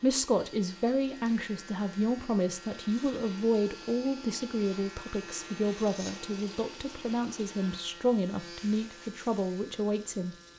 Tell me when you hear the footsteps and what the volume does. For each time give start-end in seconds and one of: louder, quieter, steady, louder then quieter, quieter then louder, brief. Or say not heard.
not heard.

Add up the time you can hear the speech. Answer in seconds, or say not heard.
10 s.